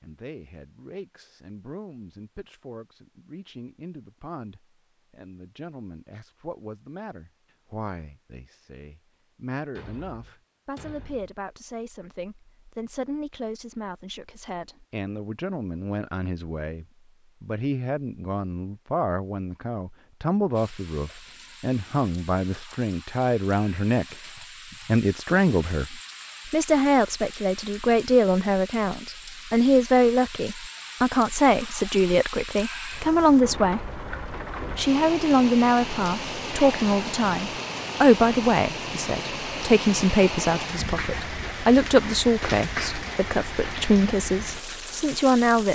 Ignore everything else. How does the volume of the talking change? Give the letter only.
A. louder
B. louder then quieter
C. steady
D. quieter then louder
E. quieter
A.